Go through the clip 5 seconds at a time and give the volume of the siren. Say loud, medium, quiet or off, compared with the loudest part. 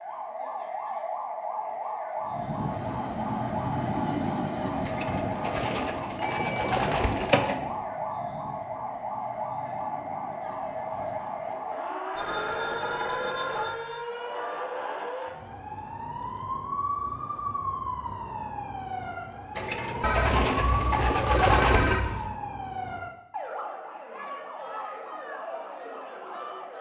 loud, loud, loud, loud, loud, medium.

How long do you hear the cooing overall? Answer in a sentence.
The cooing can be heard for 5 seconds in total.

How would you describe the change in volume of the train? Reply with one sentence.
The volume of the train goes down.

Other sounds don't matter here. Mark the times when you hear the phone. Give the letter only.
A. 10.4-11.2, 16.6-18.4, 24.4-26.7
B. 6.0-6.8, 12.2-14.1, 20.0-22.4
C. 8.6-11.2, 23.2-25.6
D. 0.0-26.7
B.